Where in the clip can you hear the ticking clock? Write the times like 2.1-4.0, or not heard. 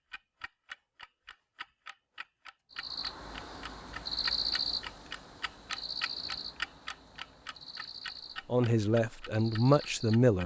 0.1-10.4.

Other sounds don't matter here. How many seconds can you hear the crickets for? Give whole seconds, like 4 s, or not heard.
8 s.